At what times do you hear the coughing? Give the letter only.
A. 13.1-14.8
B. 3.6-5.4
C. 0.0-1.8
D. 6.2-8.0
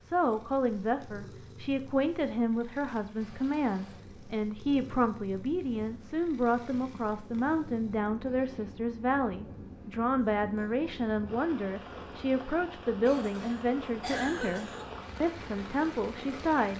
A.